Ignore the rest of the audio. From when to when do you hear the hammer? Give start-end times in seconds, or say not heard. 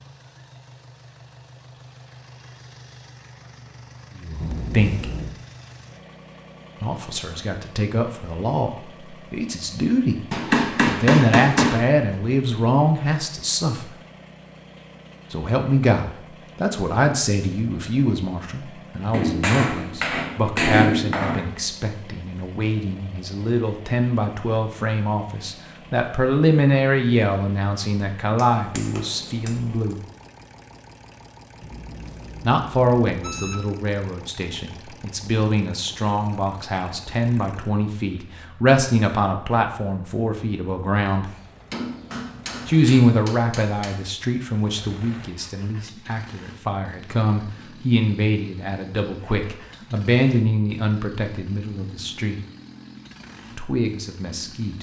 10.3-11.8, 19.1-21.4, 28.4-29.9, 41.2-44.1.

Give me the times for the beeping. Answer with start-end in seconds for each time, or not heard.
4.4-5.3, 31.6-33.6.